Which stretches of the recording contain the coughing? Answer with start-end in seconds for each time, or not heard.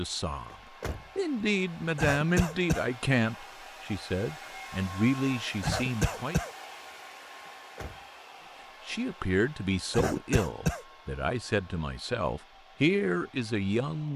1.9-2.9, 5.6-6.5, 9.9-10.8.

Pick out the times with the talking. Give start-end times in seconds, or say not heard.
0.0-0.6, 1.1-6.3, 8.8-14.1.